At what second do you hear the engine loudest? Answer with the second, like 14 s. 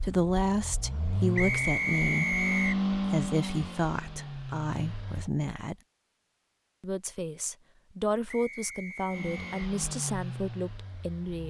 3 s.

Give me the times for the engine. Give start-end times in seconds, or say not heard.
0.0-5.3, 9.1-11.4.